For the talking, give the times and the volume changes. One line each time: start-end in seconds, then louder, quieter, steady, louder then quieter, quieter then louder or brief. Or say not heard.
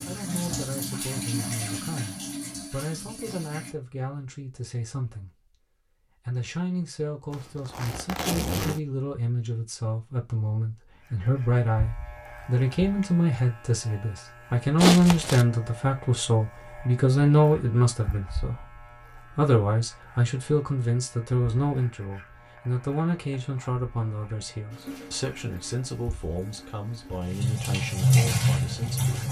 0.1-5.5 steady
6.2-29.2 louder then quieter.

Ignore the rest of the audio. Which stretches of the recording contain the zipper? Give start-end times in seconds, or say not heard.
7.3-8.8, 14.8-15.4.